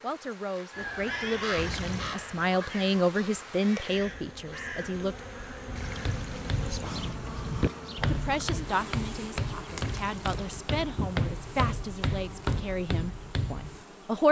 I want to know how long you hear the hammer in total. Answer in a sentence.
You can hear the hammer for 8 seconds altogether.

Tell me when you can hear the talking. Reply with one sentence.
You can hear the talking from 0.0 to 5.2 s and from 8.1 to 14.2 s.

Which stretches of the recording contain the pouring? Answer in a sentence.
You can hear the pouring from 1.6 to 2.2 s, from 5.8 to 7.2 s and from 9.7 to 10.7 s.